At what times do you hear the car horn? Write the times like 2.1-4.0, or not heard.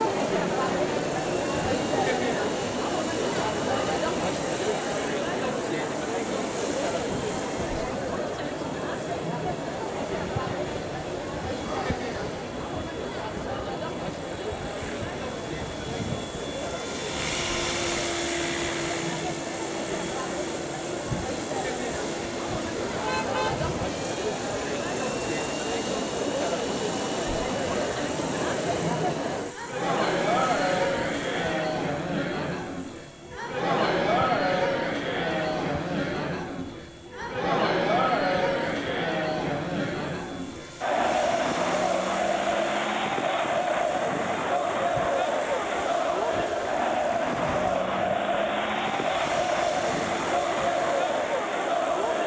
22.9-23.6.